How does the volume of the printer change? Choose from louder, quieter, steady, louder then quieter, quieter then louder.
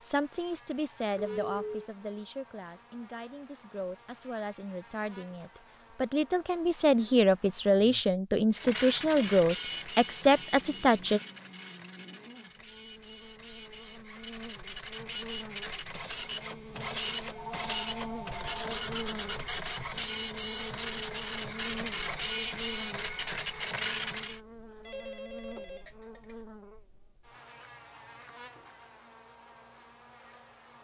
quieter then louder.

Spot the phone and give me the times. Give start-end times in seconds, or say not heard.
1.1-1.9, 17.4-18.6, 24.9-26.4.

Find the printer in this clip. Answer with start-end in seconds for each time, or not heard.
8.5-24.4.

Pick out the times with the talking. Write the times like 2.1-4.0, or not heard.
0.0-11.2.